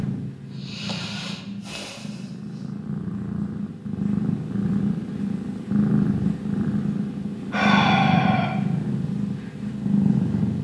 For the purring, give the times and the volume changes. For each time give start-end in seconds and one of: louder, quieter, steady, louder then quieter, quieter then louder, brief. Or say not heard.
0.0-10.5 louder.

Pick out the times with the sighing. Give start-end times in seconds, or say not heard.
0.6-2.7, 7.5-8.6.